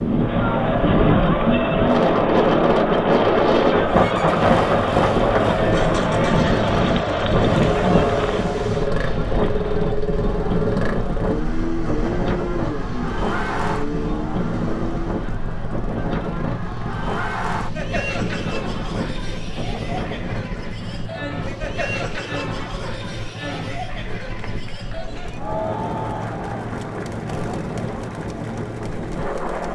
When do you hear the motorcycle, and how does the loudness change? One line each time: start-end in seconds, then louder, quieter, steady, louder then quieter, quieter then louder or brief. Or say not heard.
0.0-29.6 quieter.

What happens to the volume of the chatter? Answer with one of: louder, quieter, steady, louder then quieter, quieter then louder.
quieter.